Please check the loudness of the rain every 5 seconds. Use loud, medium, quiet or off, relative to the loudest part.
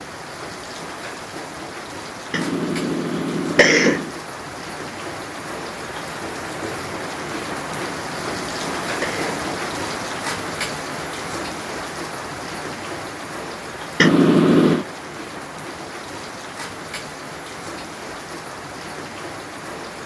medium, loud, loud, medium.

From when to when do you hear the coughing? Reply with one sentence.
The coughing can be heard from 2.3 to 4.1 s, from 7.8 to 9.6 s and from 13.9 to 14.8 s.